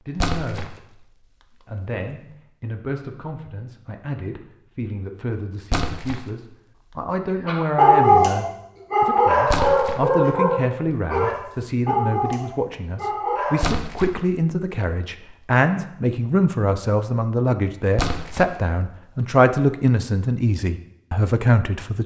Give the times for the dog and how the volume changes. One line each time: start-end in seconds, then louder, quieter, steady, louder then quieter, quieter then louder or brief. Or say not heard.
7.5-13.7 quieter.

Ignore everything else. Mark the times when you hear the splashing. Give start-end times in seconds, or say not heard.
0.1-0.8, 5.7-6.5, 9.4-10.1, 13.6-14.2, 17.9-18.6.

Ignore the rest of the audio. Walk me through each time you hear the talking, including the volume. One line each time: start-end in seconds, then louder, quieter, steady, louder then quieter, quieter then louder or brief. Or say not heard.
0.0-0.7 brief
1.6-22.0 louder.